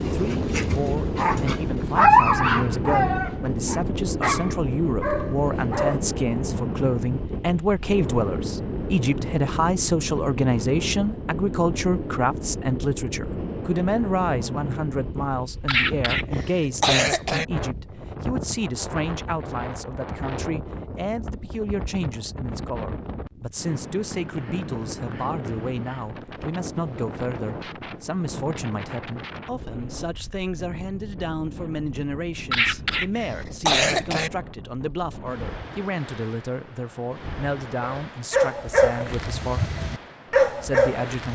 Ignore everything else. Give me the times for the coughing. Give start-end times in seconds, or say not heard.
15.7-17.4, 32.5-34.3.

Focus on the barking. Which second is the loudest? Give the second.
2 s.